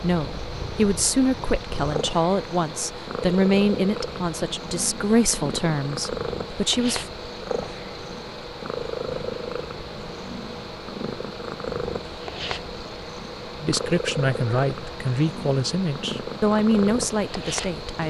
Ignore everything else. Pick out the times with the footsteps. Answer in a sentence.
The footsteps can't be heard in this clip.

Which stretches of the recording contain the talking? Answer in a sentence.
The talking can be heard from 0.0 to 7.0 s and from 13.6 to 18.0 s.